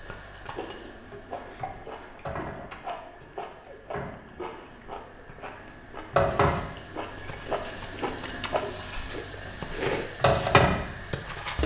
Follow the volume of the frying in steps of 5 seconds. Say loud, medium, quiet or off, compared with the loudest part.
quiet, medium, loud.